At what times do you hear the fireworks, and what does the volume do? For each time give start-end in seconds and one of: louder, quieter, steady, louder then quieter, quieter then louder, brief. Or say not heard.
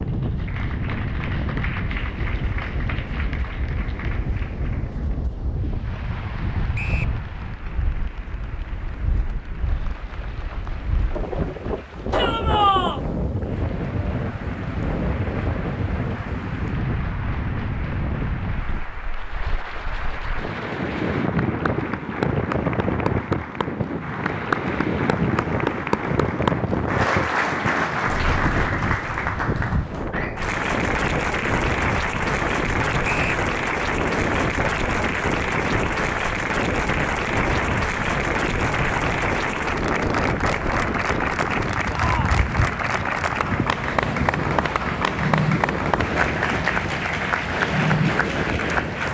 not heard.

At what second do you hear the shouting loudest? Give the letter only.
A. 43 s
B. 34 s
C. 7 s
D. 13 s
D.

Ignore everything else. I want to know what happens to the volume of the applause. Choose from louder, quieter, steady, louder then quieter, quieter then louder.
louder.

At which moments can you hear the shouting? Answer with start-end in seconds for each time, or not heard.
12.1-13.0, 41.9-42.4.